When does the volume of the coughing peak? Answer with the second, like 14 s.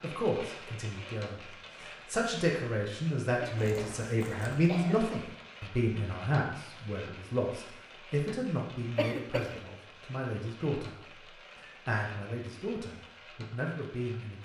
9 s.